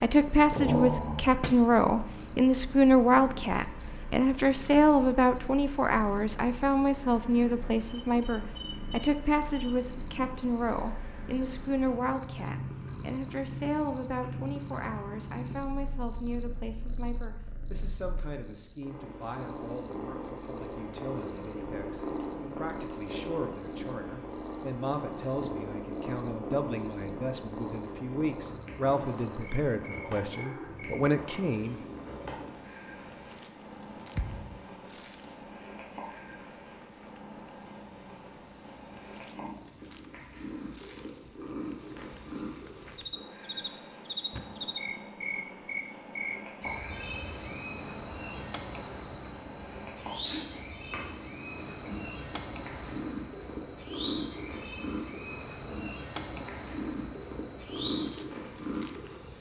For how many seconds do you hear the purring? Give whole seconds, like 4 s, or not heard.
59 s.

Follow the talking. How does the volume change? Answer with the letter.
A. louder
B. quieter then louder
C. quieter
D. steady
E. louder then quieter
B.